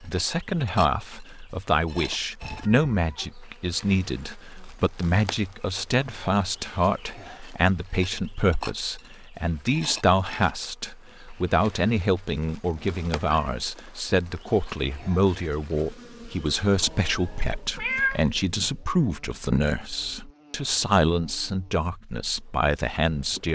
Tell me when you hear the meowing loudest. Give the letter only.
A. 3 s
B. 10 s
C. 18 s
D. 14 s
C.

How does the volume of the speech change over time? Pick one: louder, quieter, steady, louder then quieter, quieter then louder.
steady.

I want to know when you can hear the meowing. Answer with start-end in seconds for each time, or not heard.
2.4-3.3, 12.8-13.5, 16.8-18.2.